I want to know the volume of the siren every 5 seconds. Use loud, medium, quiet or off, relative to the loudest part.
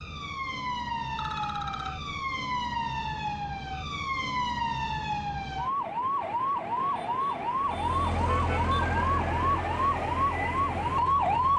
medium, loud, loud.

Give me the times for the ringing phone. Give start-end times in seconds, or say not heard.
1.1-2.1.